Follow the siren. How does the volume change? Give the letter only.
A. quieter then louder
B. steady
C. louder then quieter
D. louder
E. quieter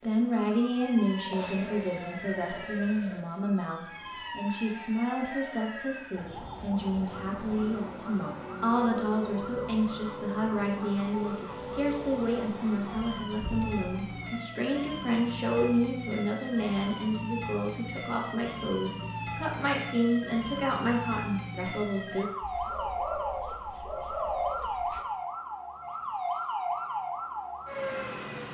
D.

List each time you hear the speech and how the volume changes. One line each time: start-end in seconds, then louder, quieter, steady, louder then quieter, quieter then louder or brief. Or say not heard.
0.0-22.3 steady.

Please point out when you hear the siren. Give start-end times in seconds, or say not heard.
0.1-28.4.